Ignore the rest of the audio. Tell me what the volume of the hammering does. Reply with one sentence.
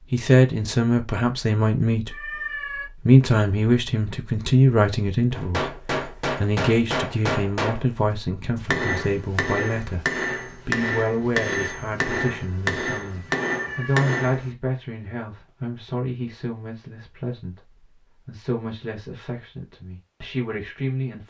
The loudness of the hammering stays about the same.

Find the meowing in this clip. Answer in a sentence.
The meowing can be heard from 2.1 to 2.9 s and from 13.5 to 14.1 s.